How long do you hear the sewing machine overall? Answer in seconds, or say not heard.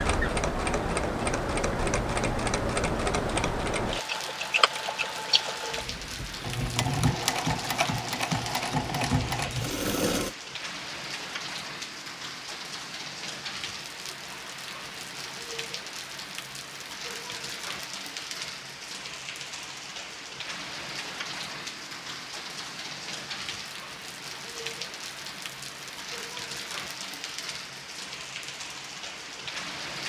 10 s.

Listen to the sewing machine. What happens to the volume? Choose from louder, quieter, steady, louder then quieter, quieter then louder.
steady.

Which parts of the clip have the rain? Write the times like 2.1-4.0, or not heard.
0.0-30.0.